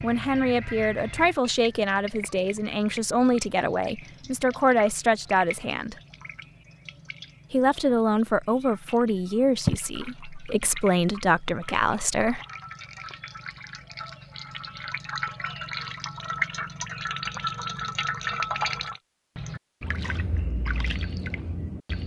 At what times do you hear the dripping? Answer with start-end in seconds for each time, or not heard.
0.0-22.0.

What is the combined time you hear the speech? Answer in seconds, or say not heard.
11 s.